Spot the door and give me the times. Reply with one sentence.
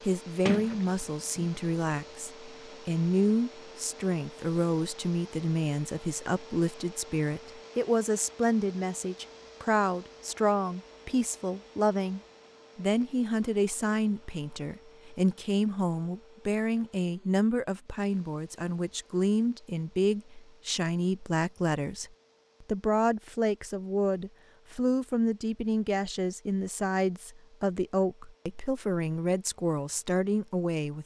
The door can be heard from 0.5 to 1.5 s.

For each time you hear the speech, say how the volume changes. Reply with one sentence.
The speech can be heard from 0.0 to 31.0 s, at a steady volume.